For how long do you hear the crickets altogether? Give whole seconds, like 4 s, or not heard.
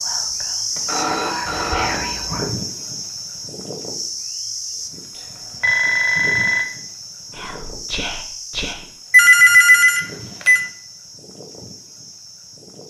13 s.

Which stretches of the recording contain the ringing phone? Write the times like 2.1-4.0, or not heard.
0.8-2.2, 5.2-6.7, 9.1-10.6.